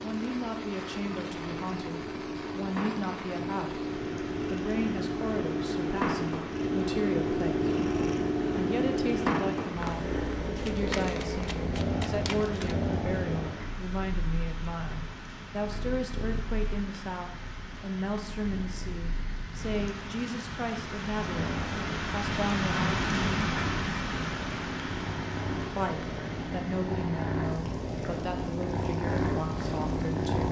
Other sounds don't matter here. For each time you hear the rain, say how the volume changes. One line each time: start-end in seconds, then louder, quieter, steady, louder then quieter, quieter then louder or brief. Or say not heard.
0.0-30.4 louder then quieter.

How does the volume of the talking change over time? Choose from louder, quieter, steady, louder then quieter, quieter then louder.
steady.